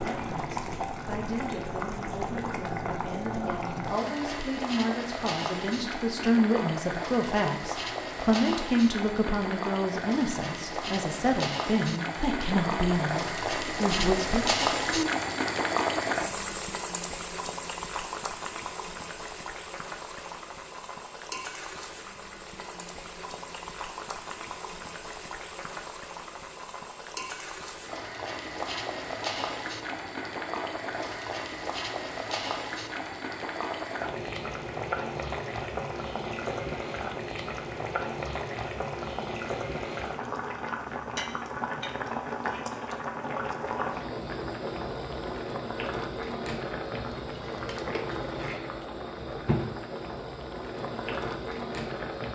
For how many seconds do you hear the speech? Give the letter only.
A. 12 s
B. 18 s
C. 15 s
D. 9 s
C.